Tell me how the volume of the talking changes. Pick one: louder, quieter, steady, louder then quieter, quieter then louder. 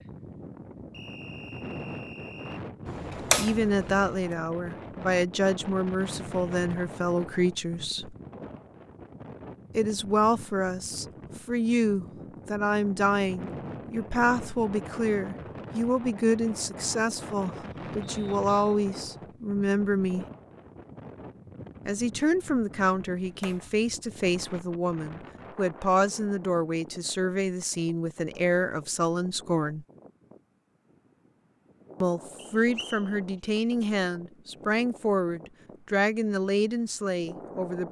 steady.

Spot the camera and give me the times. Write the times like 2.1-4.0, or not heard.
2.9-4.2, 23.1-23.9.